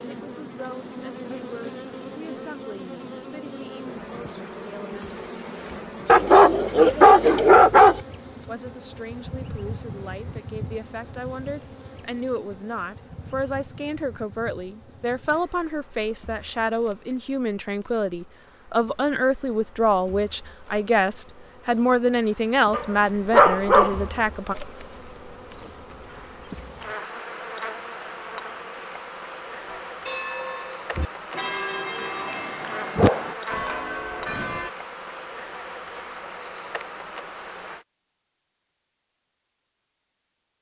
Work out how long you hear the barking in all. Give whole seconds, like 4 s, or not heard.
4 s.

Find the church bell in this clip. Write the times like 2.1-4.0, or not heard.
29.6-34.7.